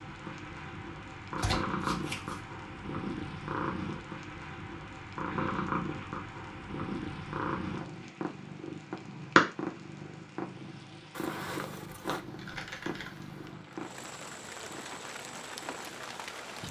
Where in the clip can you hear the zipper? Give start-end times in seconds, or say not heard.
11.1-12.2.